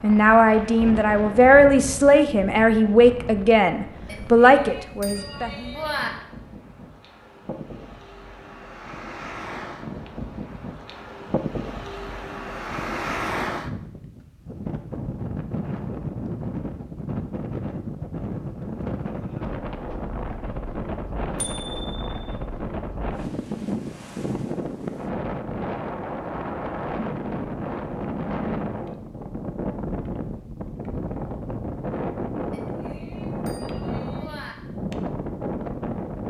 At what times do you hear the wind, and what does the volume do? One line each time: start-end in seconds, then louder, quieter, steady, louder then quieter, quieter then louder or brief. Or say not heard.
0.0-36.2 louder.